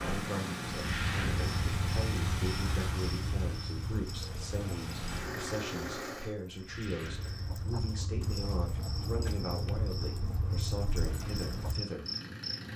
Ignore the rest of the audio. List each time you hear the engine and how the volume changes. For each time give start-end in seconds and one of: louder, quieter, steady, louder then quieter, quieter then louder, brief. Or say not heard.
0.0-6.3 quieter then louder
11.0-12.7 brief.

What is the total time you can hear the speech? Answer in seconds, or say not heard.
12 s.